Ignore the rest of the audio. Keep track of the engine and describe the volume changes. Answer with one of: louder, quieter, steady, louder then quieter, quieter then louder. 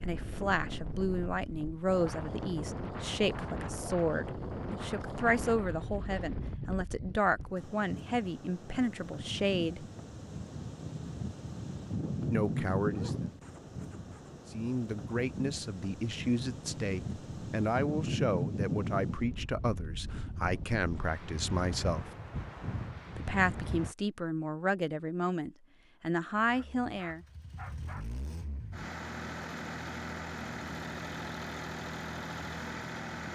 louder.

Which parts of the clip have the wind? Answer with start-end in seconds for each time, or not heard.
0.0-23.9.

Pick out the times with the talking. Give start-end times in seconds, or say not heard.
0.0-9.8, 12.3-13.2, 14.5-22.1, 23.1-27.2.